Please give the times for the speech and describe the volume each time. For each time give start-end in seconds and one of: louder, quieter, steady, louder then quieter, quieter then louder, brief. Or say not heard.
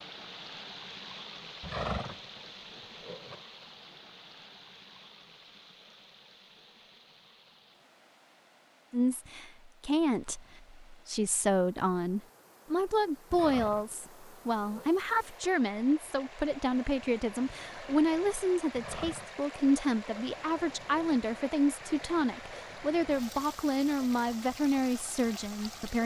8.9-26.0 steady.